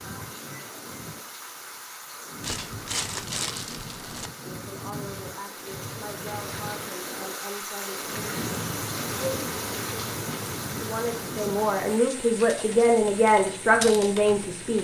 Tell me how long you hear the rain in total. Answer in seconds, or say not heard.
15 s.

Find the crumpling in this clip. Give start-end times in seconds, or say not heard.
2.4-4.3.